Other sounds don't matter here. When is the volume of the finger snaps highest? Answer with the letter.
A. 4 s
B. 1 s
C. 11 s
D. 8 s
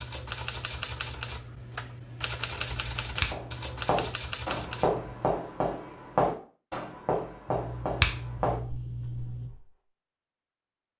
D.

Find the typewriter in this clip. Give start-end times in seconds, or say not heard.
0.0-5.3.